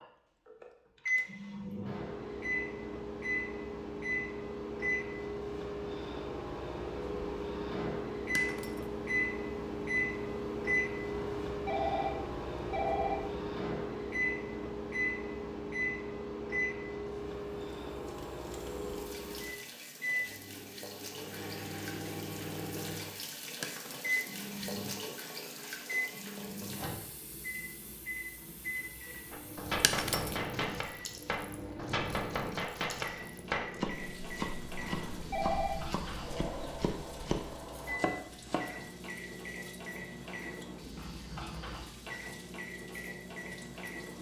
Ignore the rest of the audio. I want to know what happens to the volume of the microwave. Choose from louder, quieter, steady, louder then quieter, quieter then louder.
quieter.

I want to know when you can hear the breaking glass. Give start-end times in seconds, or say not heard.
8.3-8.8, 23.6-24.1, 29.8-30.4.